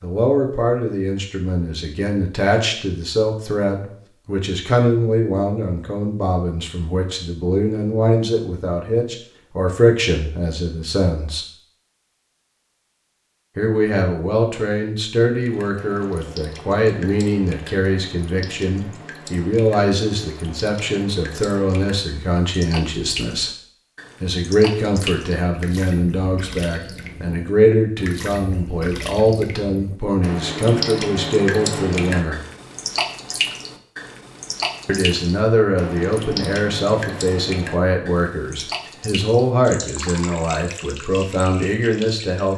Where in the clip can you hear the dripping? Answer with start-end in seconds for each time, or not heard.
15.4-42.5.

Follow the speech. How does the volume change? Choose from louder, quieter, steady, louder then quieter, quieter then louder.
steady.